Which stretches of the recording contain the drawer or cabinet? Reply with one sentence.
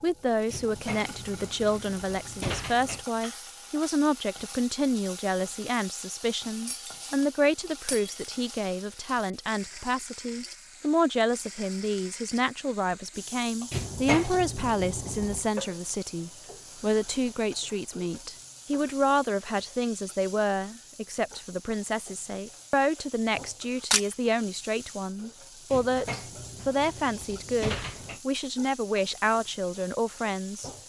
You can hear the drawer or cabinet from 0.5 to 3.0 s, from 13.7 to 15.4 s and from 25.7 to 28.2 s.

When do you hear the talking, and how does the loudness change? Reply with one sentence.
The talking can be heard from 0.0 to 30.7 s, at a steady volume.